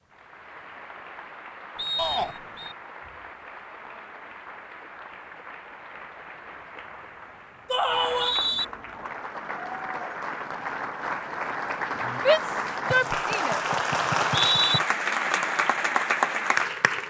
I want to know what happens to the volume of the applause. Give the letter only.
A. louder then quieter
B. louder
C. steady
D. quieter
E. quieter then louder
B.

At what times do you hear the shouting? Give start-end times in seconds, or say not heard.
1.9-2.4, 7.7-8.3, 12.2-13.6.